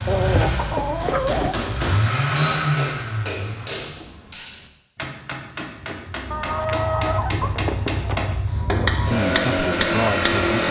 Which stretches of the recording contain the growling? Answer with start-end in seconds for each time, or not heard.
not heard.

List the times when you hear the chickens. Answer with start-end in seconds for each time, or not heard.
0.1-1.6, 6.3-8.2.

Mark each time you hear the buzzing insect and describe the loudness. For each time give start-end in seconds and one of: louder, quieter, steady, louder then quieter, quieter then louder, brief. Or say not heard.
not heard.